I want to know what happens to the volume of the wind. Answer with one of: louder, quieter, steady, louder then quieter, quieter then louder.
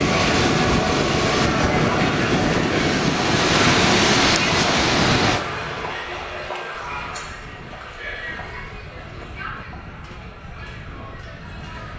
quieter.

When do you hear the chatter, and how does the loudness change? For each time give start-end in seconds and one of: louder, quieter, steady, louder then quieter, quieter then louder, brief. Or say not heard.
0.0-11.9 quieter.